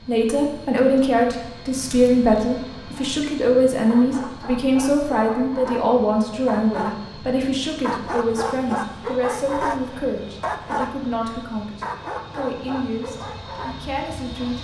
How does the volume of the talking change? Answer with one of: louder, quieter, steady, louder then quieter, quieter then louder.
quieter.